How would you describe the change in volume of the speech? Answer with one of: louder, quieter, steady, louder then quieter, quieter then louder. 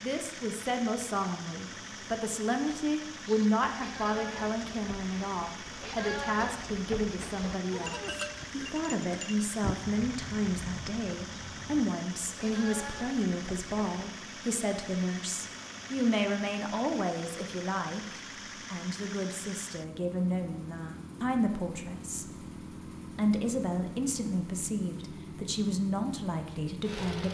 steady.